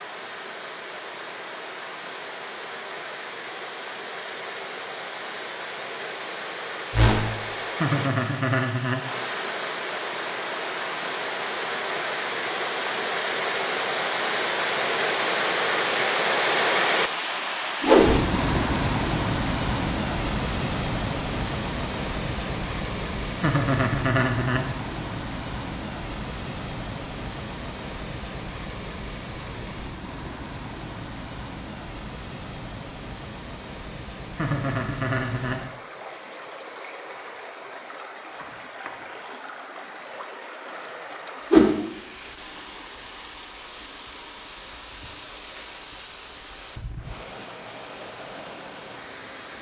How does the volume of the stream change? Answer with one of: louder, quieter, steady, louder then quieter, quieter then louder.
louder then quieter.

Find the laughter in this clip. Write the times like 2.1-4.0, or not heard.
7.8-9.0, 23.4-24.6, 34.4-35.6.